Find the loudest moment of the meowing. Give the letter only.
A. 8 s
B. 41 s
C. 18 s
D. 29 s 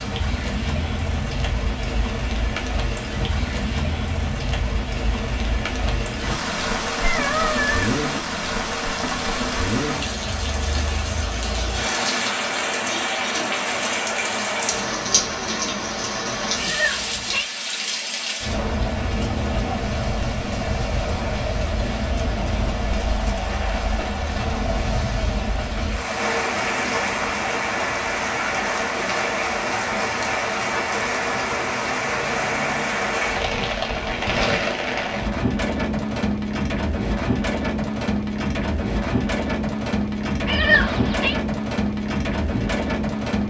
B.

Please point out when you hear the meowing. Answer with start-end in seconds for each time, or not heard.
7.0-8.0, 16.6-17.5, 40.5-41.4.